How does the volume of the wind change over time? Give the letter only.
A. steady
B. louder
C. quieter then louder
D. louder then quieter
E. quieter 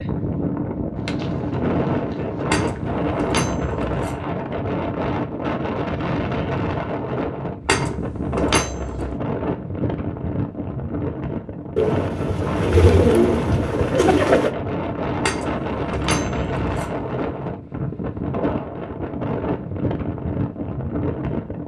A.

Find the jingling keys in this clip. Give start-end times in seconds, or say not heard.
2.5-4.2, 7.7-9.2, 15.2-17.1.